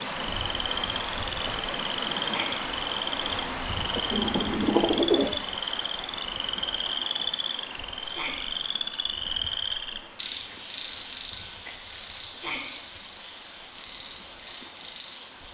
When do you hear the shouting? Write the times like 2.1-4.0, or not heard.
2.1-2.6, 8.0-8.4, 12.2-12.7.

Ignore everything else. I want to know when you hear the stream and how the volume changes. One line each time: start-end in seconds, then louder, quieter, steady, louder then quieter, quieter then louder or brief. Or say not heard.
0.0-15.4 quieter.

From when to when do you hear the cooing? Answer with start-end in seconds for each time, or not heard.
3.8-5.4.